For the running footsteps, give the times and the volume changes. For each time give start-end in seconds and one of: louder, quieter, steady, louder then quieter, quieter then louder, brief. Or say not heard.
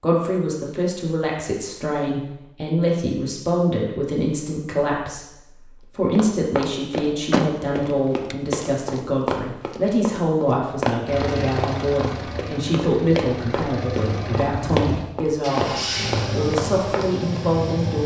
6.1-17.4 steady.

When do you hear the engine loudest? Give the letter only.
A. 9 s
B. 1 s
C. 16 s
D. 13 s
C.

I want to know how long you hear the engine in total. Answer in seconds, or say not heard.
7 s.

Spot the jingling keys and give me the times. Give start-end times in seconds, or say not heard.
7.2-8.3.